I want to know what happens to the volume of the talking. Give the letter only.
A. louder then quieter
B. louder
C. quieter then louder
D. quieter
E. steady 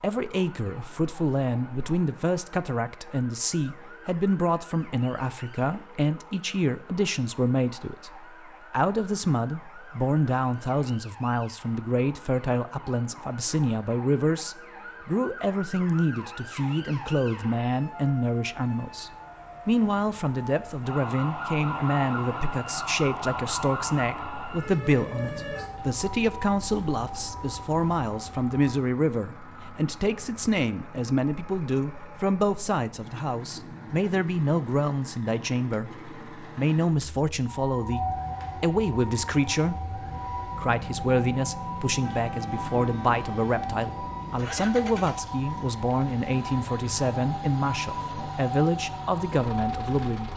E.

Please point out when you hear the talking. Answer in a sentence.
The talking can be heard from 0.0 to 50.3 s.